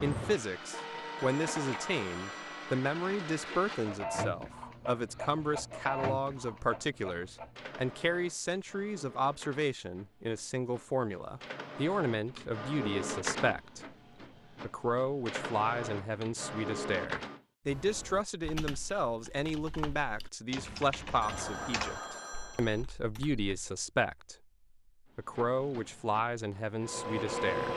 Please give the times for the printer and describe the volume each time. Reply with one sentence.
You can hear the printer from 0.0 to 17.4 s, getting quieter then louder; and briefly from 25.3 to 27.7 s.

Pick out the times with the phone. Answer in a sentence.
The phone can be heard from 1.1 to 2.8 s and from 21.2 to 22.9 s.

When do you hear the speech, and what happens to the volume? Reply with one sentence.
The speech can be heard from 0.0 to 13.8 s, at a steady volume; from 14.7 to 24.4 s, at a steady volume; and briefly from 25.1 to 27.7 s.